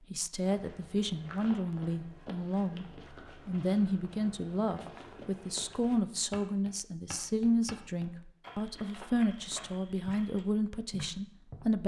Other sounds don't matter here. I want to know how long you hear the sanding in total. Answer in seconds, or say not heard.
not heard.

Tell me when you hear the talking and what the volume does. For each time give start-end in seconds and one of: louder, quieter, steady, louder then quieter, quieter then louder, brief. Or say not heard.
0.1-11.8 steady.